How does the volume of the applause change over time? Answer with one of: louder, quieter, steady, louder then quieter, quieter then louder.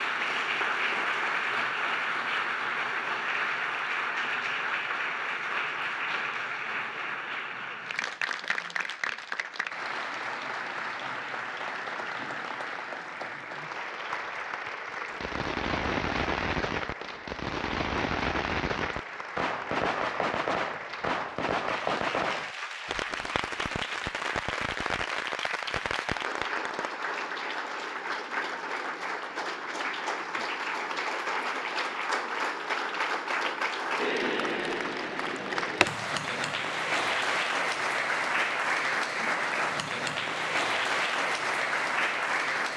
quieter then louder.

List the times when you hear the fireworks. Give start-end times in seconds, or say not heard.
15.1-26.9.